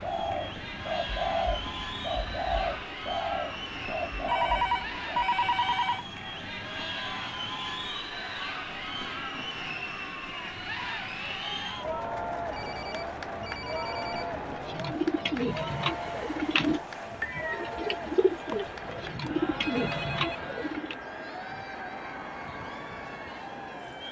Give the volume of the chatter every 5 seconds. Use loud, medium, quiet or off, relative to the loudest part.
loud, loud, loud, loud, medium.